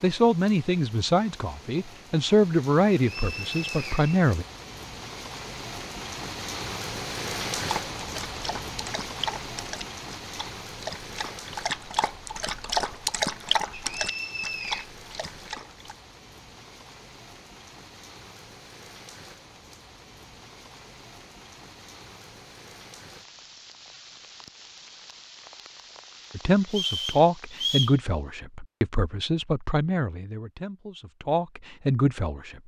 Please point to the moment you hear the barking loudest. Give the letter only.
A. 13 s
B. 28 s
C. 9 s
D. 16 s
A.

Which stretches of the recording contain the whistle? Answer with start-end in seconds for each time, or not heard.
3.0-4.3, 13.7-14.9, 26.6-28.0.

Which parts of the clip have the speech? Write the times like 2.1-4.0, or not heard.
0.0-4.5, 26.4-32.6.